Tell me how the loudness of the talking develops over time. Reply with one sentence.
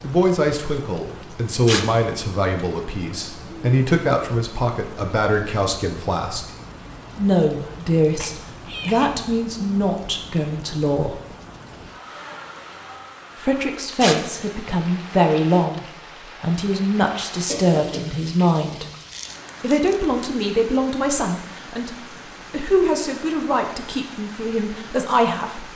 The volume of the talking stays about the same.